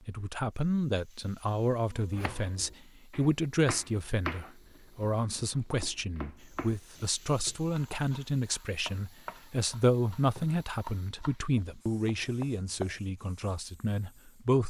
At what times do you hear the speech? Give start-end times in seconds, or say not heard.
0.1-14.6.